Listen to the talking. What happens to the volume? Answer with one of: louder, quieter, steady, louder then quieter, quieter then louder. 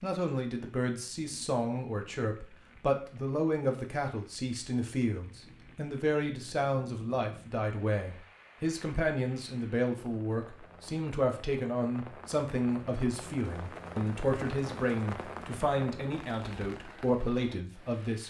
steady.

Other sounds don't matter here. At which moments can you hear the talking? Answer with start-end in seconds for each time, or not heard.
0.0-18.2.